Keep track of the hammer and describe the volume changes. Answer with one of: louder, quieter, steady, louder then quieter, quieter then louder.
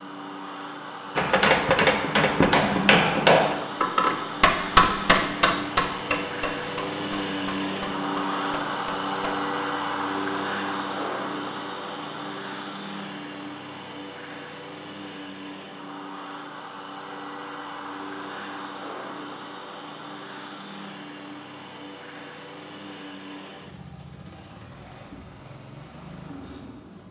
quieter.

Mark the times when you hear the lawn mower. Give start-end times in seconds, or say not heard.
0.0-27.0.